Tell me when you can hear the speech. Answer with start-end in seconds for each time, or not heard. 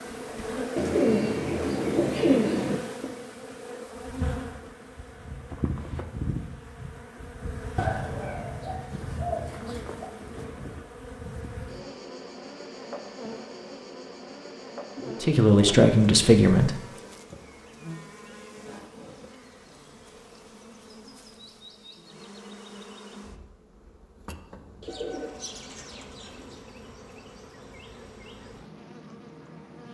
15.2-16.8.